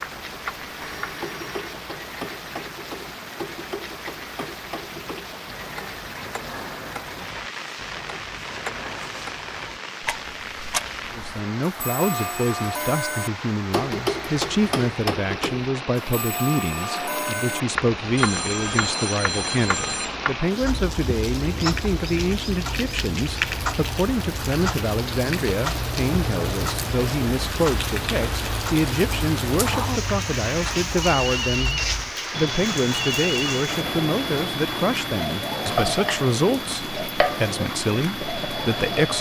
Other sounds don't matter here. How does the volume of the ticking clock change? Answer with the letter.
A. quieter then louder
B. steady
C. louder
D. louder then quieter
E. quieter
C.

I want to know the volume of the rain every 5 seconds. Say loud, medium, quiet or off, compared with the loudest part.
medium, medium, medium, loud, loud, loud, loud, loud.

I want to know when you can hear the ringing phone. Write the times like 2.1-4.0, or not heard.
0.8-1.9, 18.1-20.1, 31.0-33.6.